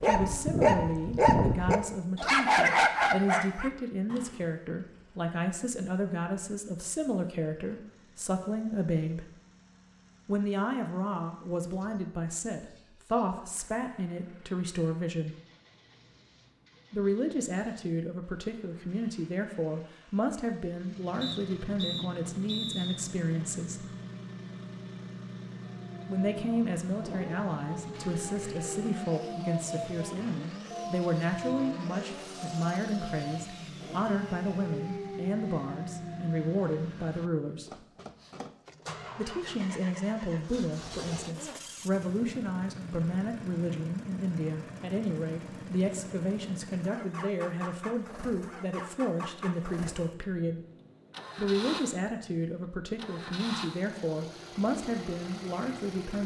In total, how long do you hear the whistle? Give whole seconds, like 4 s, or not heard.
2 s.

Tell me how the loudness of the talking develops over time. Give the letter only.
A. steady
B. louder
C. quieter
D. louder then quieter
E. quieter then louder
A.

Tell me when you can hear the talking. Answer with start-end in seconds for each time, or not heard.
0.0-9.3, 10.2-15.3, 16.9-23.9, 26.1-37.8, 39.1-50.6, 51.4-56.2.